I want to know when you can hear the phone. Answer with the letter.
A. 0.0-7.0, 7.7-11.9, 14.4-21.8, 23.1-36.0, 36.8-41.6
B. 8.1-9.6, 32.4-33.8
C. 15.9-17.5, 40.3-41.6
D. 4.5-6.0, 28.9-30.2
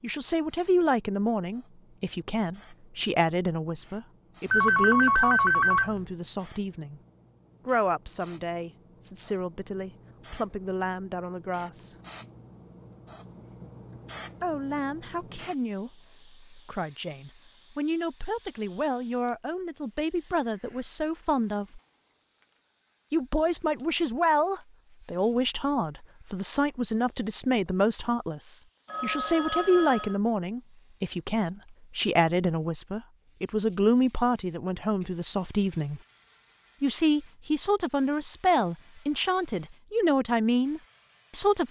D.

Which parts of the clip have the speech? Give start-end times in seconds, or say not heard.
0.0-7.0, 7.7-11.9, 14.4-21.8, 23.1-36.0, 36.8-41.6.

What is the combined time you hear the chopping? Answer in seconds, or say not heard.
not heard.